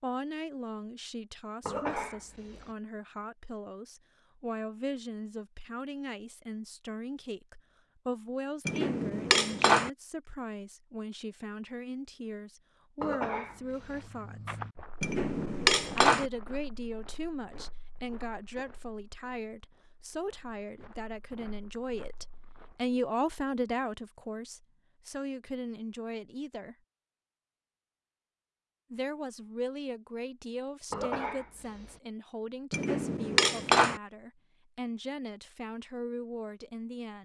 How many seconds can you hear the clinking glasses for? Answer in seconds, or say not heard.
4 s.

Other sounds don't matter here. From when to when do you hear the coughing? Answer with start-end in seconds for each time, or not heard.
1.6-2.8, 13.0-14.1, 30.9-32.0.